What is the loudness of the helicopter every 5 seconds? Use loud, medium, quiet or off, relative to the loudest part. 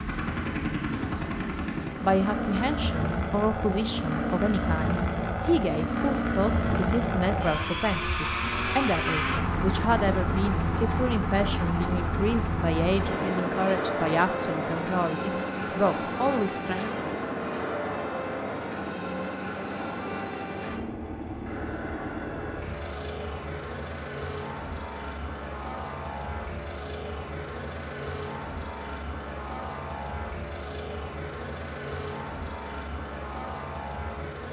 loud, loud, loud, loud, medium, medium, medium.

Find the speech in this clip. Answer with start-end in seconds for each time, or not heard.
2.0-16.9.